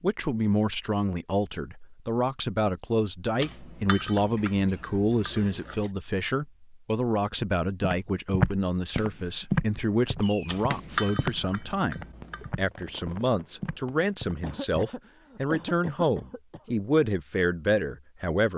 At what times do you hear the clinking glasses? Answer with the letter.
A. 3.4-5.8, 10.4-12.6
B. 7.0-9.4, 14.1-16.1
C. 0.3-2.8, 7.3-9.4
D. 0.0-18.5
A.